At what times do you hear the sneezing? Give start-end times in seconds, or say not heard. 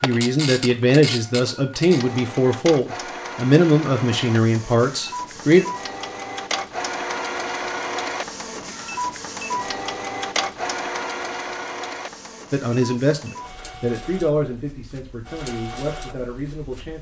not heard.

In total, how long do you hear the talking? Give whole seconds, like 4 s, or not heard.
10 s.